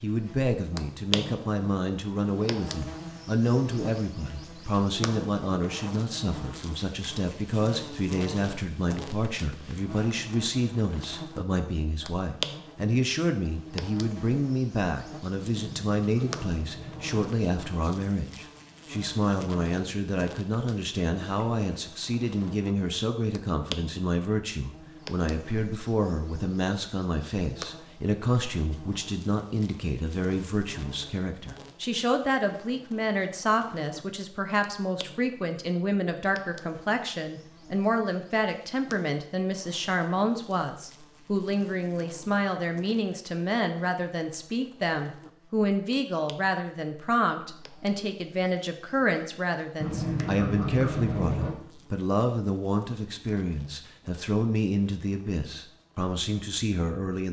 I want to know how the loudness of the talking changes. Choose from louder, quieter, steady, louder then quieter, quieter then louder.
steady.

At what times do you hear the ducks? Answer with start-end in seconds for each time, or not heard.
15.3-17.3, 49.8-51.5.